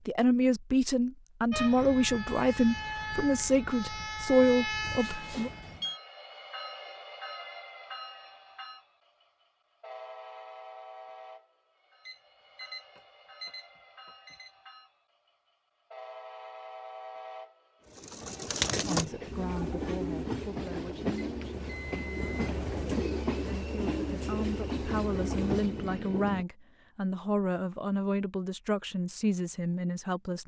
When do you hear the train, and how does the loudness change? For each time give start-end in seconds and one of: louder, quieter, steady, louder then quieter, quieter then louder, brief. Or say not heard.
1.5-26.4 quieter then louder.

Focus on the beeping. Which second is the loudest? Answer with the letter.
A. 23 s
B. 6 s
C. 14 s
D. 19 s
B.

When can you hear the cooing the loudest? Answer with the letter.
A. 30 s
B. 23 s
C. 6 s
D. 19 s
D.